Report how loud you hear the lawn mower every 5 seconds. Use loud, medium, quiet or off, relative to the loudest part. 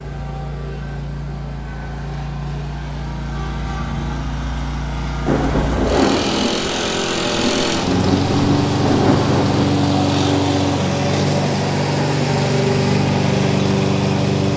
medium, loud, loud.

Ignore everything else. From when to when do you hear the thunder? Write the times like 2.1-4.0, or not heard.
5.2-9.7.